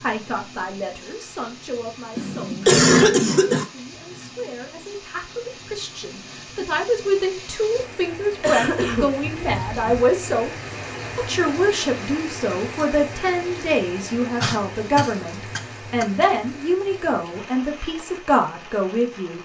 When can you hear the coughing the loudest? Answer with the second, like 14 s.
3 s.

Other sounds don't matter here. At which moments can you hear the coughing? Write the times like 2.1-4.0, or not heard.
2.1-3.6, 8.4-10.0, 14.4-16.1.